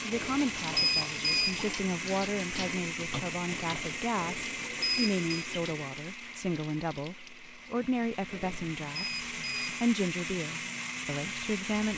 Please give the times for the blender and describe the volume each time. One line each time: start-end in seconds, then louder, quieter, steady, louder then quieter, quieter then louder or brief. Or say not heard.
0.0-11.9 quieter then louder.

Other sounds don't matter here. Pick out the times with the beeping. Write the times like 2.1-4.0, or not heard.
0.1-1.6, 4.2-5.5, 8.3-9.8.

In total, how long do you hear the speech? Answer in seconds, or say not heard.
12 s.